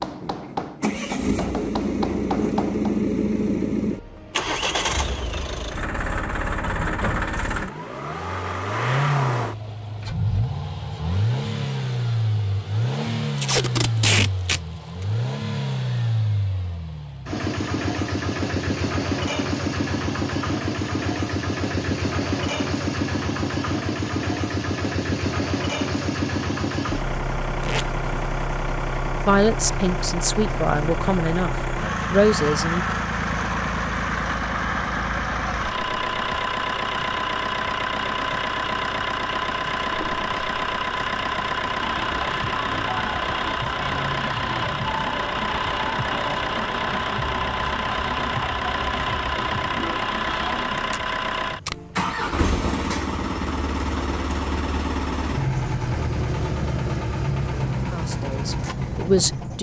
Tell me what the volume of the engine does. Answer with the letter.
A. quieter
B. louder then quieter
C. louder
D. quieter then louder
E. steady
E.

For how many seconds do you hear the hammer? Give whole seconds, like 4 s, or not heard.
3 s.